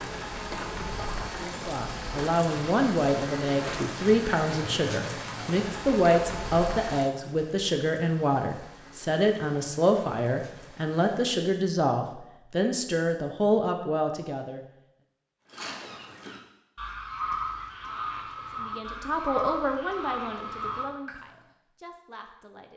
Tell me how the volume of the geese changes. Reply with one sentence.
The volume of the geese goes up.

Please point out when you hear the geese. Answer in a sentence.
The geese can be heard from 15.5 to 21.1 s.